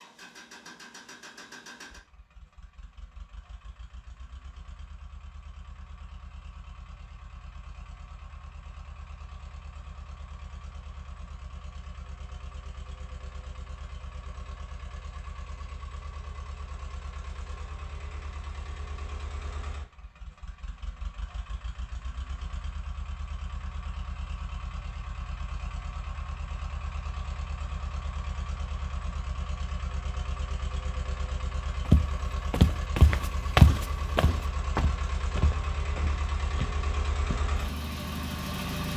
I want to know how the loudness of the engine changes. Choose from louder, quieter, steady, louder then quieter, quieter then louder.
louder.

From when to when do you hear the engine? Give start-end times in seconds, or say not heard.
0.0-38.9.